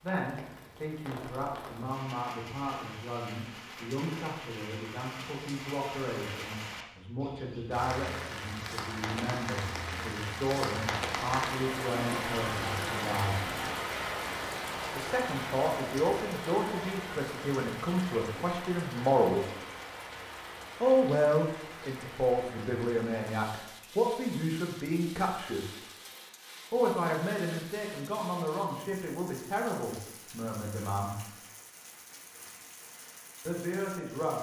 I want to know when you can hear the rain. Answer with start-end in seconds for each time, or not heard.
0.0-34.3.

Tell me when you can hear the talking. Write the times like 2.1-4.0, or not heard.
0.0-13.6, 14.9-19.5, 20.8-25.8, 26.7-31.1, 33.5-34.3.